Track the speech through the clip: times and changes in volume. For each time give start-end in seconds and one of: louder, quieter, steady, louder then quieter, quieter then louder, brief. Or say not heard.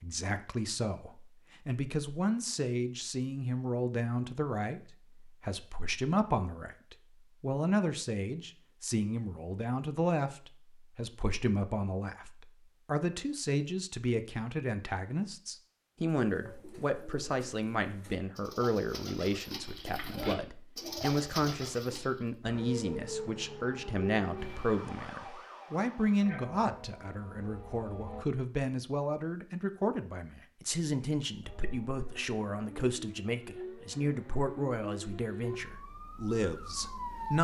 0.0-37.4 steady.